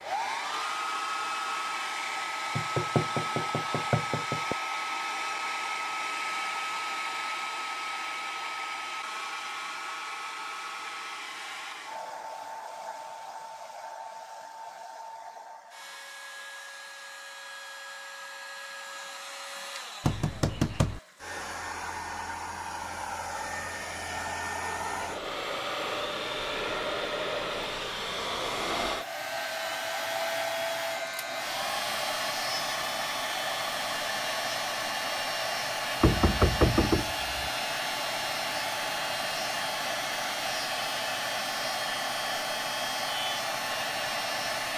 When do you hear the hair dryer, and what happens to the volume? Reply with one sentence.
You can hear the hair dryer from 0.0 to 44.7 s, getting quieter then louder.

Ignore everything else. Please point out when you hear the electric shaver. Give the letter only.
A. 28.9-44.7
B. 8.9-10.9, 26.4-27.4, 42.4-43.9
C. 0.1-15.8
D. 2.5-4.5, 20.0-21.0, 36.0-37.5
A.